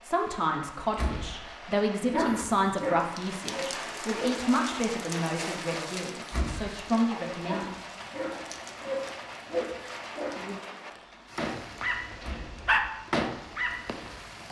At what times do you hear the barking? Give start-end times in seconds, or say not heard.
2.0-4.5, 7.3-14.2.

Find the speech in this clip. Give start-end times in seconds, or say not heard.
0.0-7.7.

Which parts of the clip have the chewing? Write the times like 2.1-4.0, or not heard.
not heard.